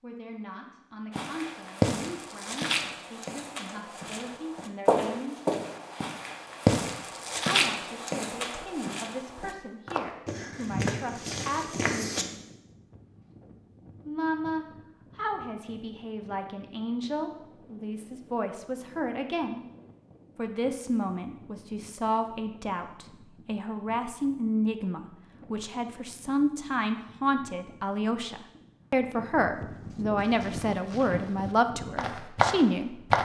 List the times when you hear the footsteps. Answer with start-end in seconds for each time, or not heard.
1.1-12.2, 30.1-33.2.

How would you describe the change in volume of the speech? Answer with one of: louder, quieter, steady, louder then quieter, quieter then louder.
louder.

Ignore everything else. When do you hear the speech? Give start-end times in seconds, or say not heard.
0.0-5.3, 7.5-12.3, 14.1-19.6, 20.4-33.0.